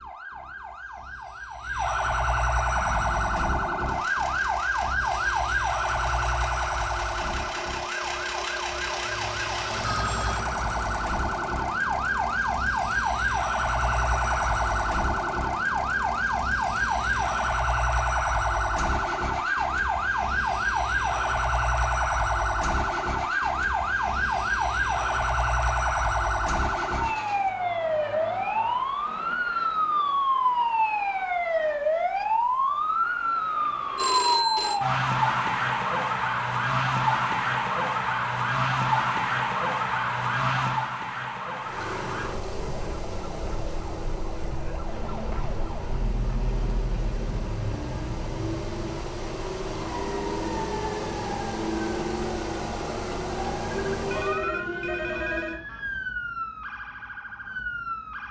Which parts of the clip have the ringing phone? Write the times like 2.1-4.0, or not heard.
9.0-10.4, 34.0-34.8, 53.7-55.6.